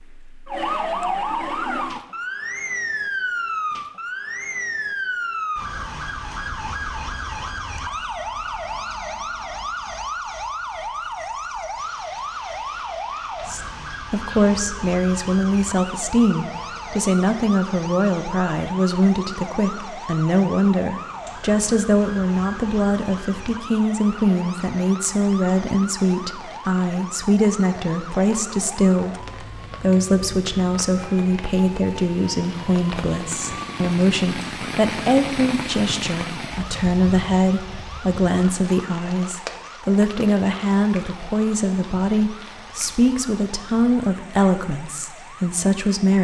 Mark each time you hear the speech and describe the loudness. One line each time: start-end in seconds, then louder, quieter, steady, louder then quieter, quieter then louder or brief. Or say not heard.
13.4-46.2 steady.